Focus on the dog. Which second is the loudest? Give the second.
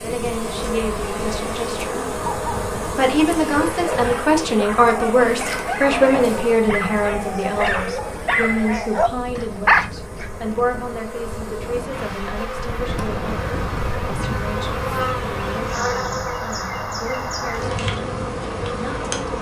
10 s.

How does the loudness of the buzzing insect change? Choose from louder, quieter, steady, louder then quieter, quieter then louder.
quieter then louder.